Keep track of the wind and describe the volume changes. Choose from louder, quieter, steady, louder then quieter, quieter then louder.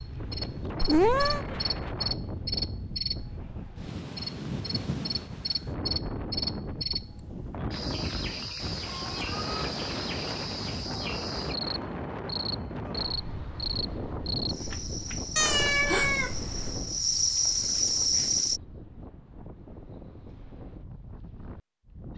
quieter.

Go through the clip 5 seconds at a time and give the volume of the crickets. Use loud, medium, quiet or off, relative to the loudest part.
medium, medium, medium, loud, off.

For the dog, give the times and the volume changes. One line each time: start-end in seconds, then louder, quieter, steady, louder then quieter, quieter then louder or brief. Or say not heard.
not heard.